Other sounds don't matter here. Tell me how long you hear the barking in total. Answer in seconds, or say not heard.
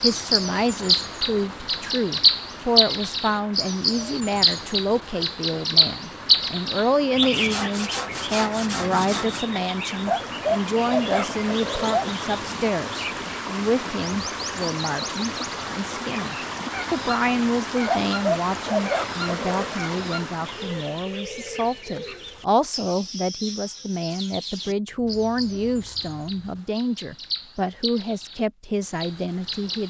4 s.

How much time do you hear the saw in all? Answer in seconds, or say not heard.
4 s.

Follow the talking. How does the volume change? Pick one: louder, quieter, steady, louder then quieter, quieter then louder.
steady.